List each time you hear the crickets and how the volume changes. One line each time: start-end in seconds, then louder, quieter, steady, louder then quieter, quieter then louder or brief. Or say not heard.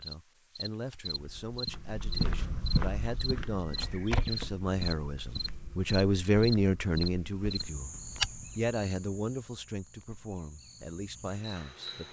0.0-12.0 quieter.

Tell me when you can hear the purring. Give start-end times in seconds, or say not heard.
not heard.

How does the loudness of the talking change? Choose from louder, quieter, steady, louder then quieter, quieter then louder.
louder then quieter.